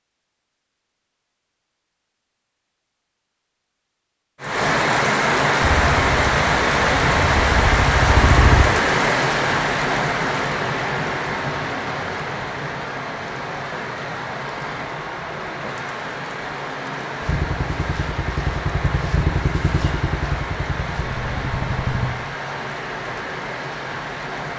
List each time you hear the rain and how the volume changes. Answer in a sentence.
You can hear the rain from 4.4 to 24.5 s, getting quieter.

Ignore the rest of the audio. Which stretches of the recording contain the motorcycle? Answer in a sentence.
The motorcycle can be heard from 5.6 to 8.7 s and from 17.2 to 22.1 s.